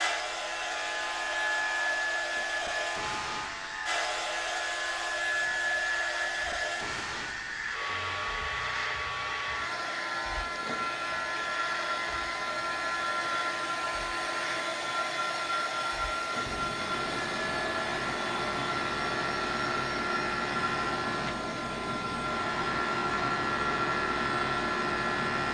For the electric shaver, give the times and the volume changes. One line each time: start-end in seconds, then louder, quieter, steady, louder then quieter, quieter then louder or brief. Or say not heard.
0.0-25.4 louder.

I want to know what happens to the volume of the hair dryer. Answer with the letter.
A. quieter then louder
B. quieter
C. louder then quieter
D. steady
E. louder
D.